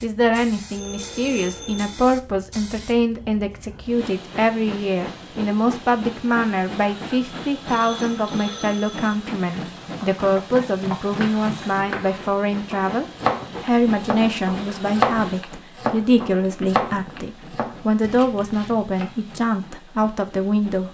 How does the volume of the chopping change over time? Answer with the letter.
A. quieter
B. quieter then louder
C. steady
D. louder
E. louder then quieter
E.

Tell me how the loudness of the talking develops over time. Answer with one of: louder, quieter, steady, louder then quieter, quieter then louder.
steady.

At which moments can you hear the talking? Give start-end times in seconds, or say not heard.
0.0-20.8.